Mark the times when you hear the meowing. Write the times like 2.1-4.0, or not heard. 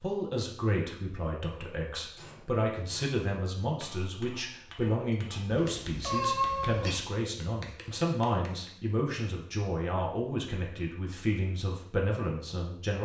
5.5-7.0.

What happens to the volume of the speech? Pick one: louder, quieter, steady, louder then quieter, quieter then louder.
steady.